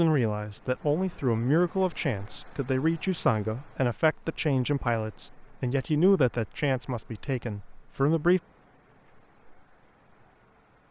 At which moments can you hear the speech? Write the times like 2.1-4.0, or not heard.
0.0-8.4.